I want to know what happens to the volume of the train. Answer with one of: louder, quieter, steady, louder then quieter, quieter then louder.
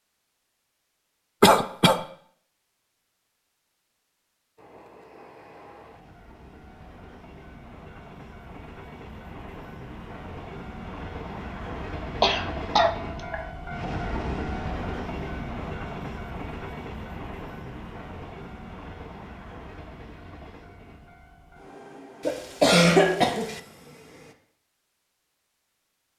louder then quieter.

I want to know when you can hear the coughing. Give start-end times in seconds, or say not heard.
1.4-2.0, 12.2-13.4, 22.2-23.6.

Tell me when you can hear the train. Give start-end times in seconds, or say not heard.
4.5-24.4.